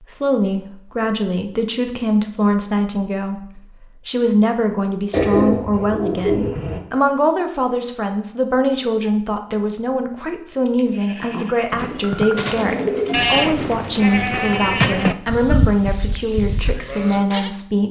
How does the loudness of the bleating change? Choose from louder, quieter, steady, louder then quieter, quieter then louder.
louder then quieter.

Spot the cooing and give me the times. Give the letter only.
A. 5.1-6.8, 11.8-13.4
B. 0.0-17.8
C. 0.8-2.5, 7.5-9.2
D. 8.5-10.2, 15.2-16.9
A.